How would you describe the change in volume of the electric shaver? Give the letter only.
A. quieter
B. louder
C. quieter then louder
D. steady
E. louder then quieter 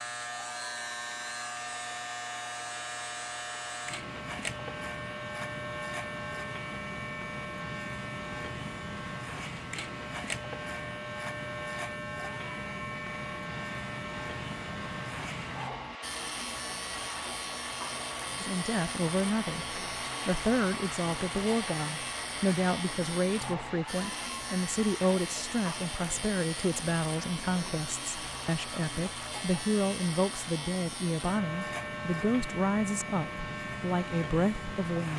D.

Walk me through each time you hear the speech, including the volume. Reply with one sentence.
The speech can be heard from 18.4 to 35.1 s, at a steady volume.